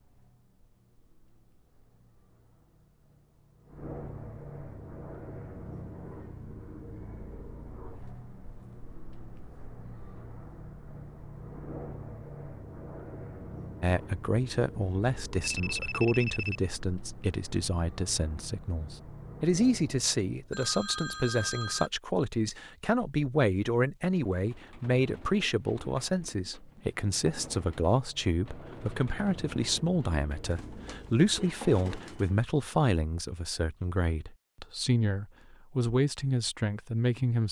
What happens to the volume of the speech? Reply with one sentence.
The loudness of the speech stays about the same.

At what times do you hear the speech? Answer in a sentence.
The speech can be heard from 13.8 to 37.4 s.